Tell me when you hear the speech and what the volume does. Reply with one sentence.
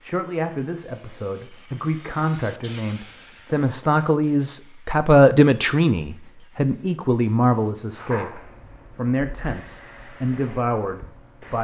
The speech can be heard from 0.0 to 11.5 s, getting louder then quieter.